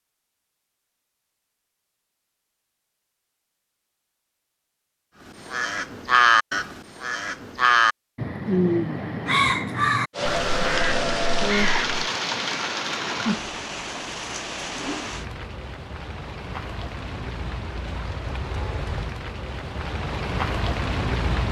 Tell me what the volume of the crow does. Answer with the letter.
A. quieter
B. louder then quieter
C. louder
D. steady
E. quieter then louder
A.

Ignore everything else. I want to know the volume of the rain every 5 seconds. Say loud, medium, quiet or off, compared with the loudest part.
off, off, loud, medium, loud.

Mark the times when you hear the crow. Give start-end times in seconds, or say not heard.
5.3-12.0.